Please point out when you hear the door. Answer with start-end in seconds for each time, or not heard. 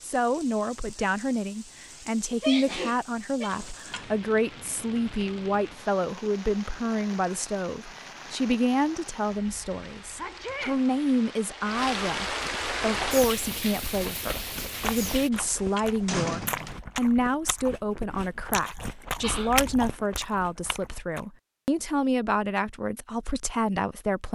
3.5-4.2, 15.3-16.8.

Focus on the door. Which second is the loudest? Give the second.
16 s.